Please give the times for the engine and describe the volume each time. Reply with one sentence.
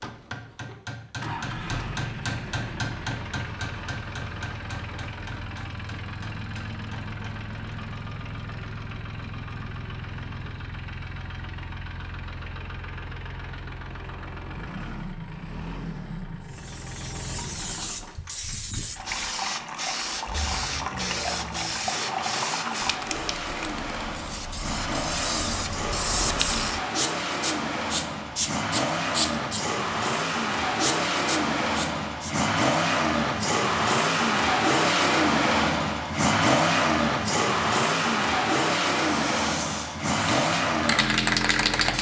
You can hear the engine from 0.0 to 41.9 s, getting louder.